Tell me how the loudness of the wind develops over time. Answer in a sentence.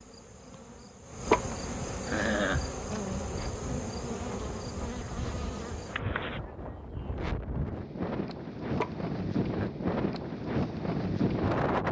The loudness of the wind goes up.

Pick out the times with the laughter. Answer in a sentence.
The laughter can be heard from 1.3 to 2.6 s and from 8.8 to 9.7 s.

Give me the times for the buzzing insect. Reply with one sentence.
You can hear the buzzing insect from 0.0 to 6.4 s.